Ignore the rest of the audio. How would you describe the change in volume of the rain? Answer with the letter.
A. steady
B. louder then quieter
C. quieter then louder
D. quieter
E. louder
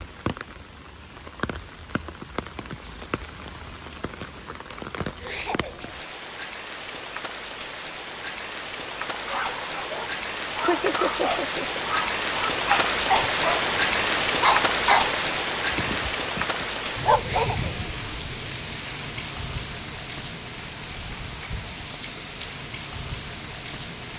B.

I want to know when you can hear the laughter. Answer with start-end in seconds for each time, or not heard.
5.2-6.0, 10.6-11.8, 17.1-17.9.